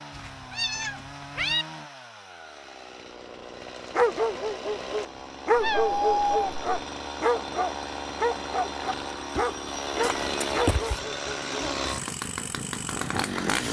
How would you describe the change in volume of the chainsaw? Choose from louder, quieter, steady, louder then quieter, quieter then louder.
louder.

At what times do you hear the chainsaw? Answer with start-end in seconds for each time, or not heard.
0.0-13.6.